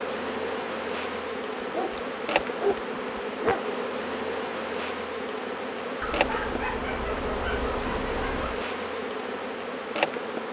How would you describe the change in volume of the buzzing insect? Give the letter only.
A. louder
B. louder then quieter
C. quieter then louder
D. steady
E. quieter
D.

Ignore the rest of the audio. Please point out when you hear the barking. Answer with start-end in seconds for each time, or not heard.
1.7-3.6, 6.0-8.7.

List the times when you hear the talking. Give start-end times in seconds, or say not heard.
not heard.